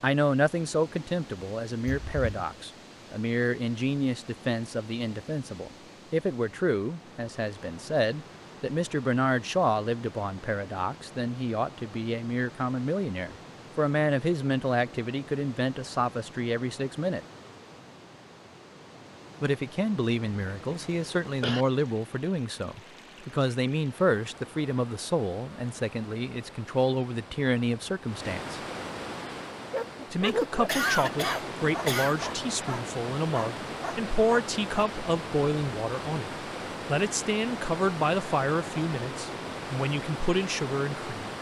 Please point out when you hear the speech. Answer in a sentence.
You can hear the speech from 0.0 to 17.2 s, from 19.4 to 28.6 s and from 30.1 to 41.3 s.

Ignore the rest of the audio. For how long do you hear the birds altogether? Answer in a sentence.
The birds can't be heard in this clip.